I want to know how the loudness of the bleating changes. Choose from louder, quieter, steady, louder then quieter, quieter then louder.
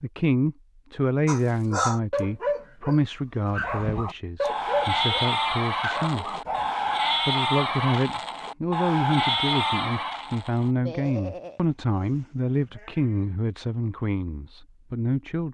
quieter.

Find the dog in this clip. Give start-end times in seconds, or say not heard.
1.2-6.9.